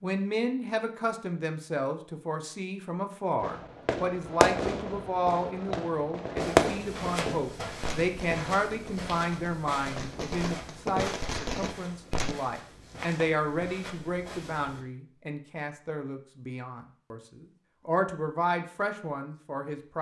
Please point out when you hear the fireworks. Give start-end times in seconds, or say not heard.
3.4-12.3.